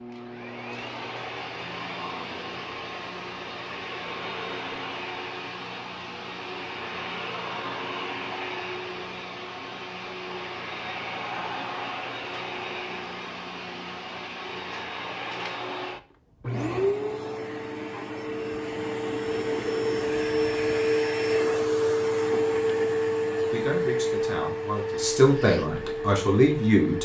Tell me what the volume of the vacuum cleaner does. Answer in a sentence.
The loudness of the vacuum cleaner goes up.